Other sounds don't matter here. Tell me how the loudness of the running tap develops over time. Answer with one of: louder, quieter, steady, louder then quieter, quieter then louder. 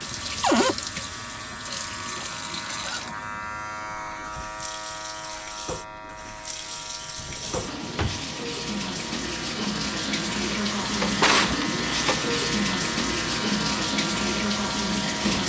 quieter then louder.